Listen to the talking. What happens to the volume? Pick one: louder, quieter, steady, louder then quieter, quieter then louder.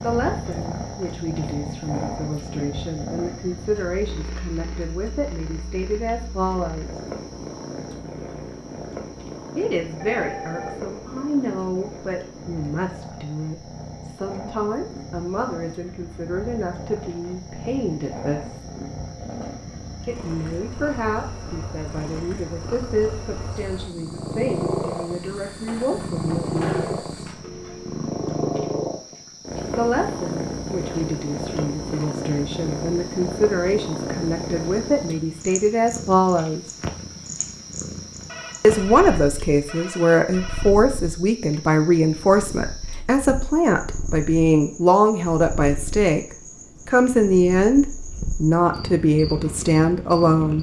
louder.